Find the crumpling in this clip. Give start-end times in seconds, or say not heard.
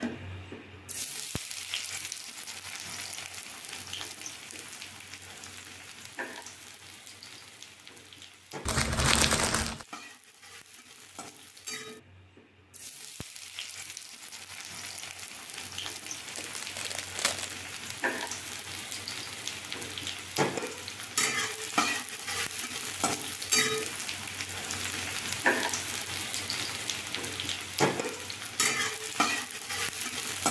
8.7-9.8, 16.2-17.6.